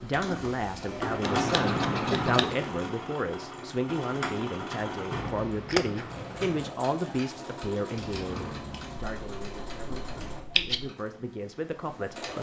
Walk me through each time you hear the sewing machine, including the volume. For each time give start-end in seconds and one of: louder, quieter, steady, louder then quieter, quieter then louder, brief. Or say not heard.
0.0-12.3 quieter.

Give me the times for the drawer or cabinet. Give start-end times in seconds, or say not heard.
0.0-1.2, 8.0-9.1.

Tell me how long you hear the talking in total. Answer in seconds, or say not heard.
12 s.